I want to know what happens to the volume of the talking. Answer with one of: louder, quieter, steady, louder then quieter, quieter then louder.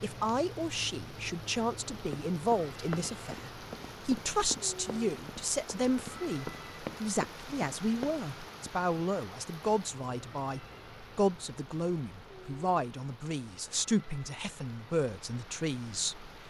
steady.